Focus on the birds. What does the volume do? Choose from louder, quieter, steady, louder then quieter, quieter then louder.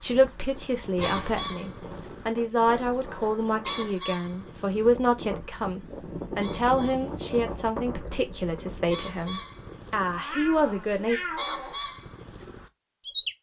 quieter then louder.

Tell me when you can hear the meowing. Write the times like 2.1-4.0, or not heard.
0.9-1.6, 10.1-11.8.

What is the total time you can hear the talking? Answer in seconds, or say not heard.
11 s.